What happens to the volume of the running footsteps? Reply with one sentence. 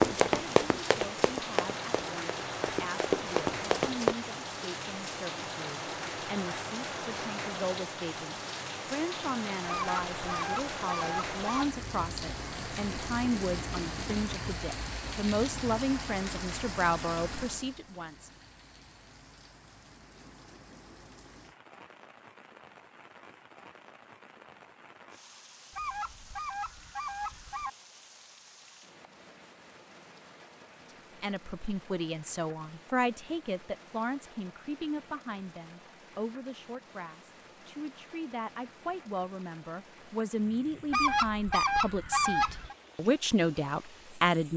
The loudness of the running footsteps goes down, then up.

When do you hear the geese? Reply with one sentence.
You can hear the geese from 9.7 to 11.7 s, from 25.7 to 27.7 s and from 40.9 to 42.8 s.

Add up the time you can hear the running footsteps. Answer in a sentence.
The running footsteps can be heard for 4 seconds in total.